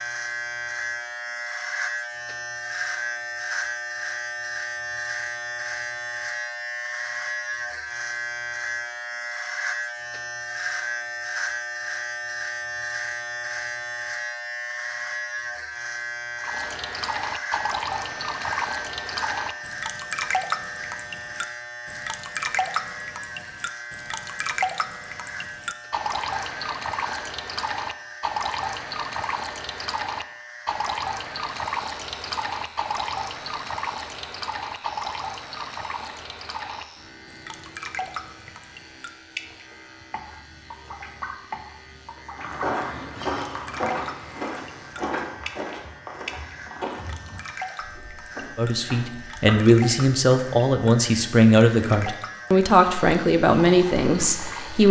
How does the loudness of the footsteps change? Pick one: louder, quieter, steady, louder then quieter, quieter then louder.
quieter.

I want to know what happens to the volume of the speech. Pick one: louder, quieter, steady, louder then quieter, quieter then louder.
steady.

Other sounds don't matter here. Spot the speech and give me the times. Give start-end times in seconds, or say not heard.
48.5-54.8.